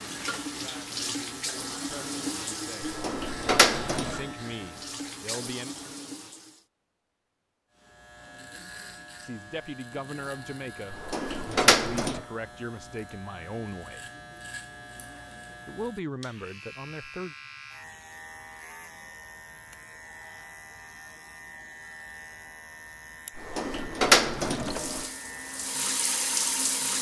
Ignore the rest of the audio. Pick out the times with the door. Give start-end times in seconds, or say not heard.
2.8-4.2, 10.9-12.2, 23.4-25.1.